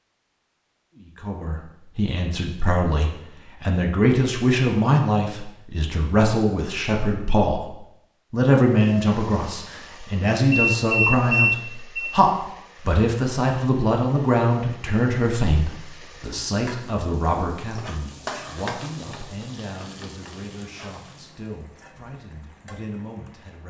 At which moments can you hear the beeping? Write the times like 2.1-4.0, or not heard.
10.5-12.1.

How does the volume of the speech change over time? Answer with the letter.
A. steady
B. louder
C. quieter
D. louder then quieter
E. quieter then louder
C.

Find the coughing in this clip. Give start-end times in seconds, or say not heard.
not heard.